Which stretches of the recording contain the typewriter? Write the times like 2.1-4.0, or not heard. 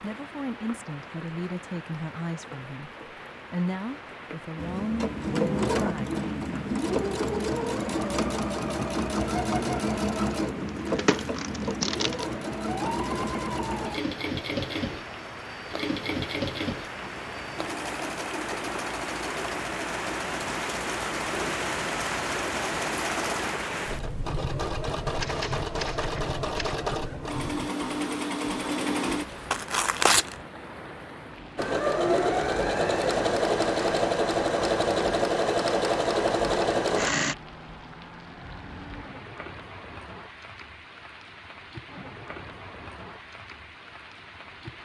25.1-26.8.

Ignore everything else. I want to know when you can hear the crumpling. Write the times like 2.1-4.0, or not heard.
10.4-12.2, 29.5-30.4.